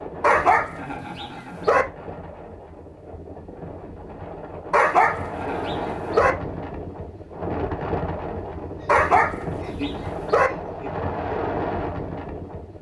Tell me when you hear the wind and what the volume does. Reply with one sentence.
You can hear the wind from 0.0 to 12.7 s, getting louder.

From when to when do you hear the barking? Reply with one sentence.
The barking can be heard from 0.2 to 1.9 s, from 4.7 to 6.3 s and from 8.8 to 10.5 s.